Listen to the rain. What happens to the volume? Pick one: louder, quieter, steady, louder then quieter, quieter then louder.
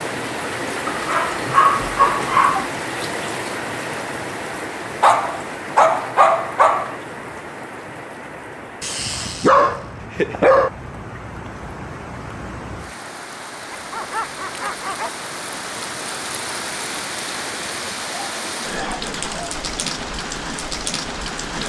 quieter then louder.